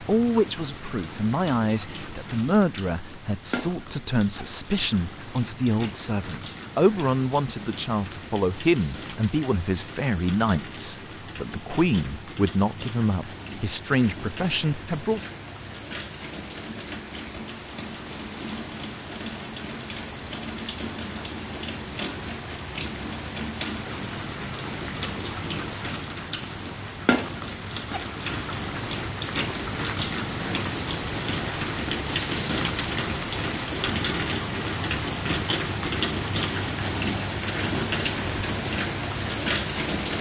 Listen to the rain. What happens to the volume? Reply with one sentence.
The loudness of the rain goes up.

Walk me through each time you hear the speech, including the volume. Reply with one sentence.
The speech can be heard from 0.0 to 15.2 s, at a steady volume.